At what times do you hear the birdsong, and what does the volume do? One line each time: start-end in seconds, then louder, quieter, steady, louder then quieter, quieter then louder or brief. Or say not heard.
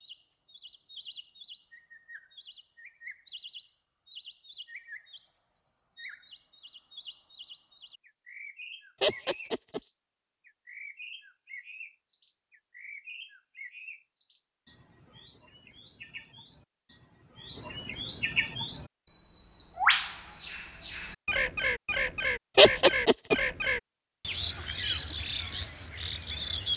0.0-26.7 louder.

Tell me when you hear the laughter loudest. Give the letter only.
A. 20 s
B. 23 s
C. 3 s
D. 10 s
B.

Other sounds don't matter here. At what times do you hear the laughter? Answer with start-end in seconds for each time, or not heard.
9.0-9.8, 22.6-23.4.